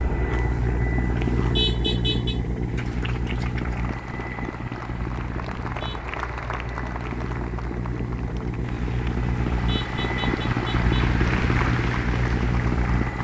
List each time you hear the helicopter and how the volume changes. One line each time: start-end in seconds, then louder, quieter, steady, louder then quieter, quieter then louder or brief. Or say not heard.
0.0-13.1 quieter then louder.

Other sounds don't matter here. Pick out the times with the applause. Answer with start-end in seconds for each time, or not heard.
2.6-13.1.